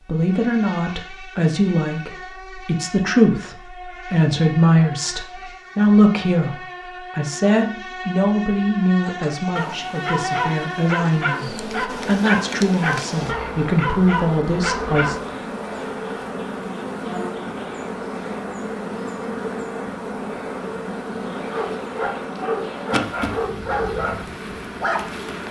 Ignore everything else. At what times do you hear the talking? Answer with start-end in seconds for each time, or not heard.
0.1-15.2.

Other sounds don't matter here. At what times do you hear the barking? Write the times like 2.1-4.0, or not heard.
9.6-15.3, 21.5-25.4.